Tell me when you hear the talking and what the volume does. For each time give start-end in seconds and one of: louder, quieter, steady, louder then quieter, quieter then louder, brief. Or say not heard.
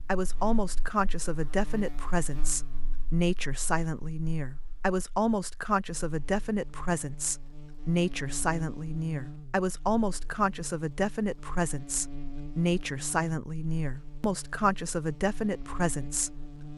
0.1-16.7 steady.